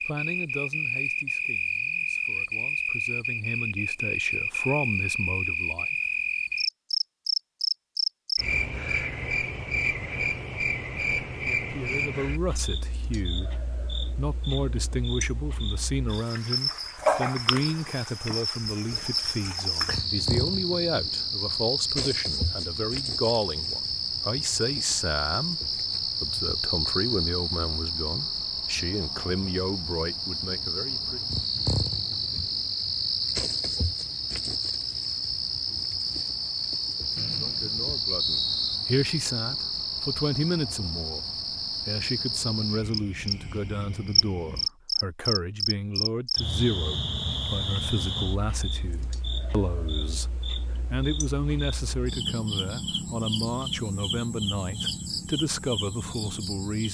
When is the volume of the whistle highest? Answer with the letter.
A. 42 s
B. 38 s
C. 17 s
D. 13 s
B.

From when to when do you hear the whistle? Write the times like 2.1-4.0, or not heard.
37.1-38.8.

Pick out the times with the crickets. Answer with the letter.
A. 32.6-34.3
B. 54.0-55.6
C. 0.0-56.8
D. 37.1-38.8
C.